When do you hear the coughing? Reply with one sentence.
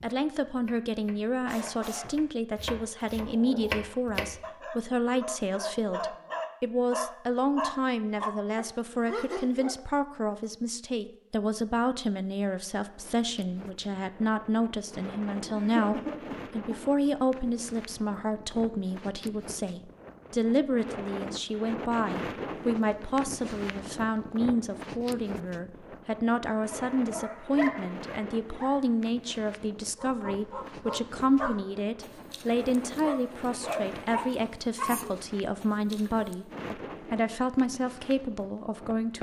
The coughing can be heard from 15.5 to 16.8 s.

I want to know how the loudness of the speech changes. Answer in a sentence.
The volume of the speech stays about the same.